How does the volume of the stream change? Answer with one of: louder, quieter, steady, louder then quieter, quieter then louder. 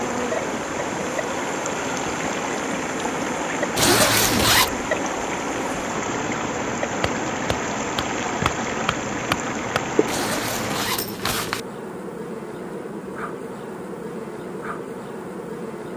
steady.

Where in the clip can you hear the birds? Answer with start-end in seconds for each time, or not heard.
not heard.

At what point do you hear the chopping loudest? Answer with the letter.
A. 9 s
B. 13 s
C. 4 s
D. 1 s
A.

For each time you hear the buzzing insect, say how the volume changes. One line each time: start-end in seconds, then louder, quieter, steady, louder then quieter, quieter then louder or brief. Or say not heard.
0.0-15.9 steady.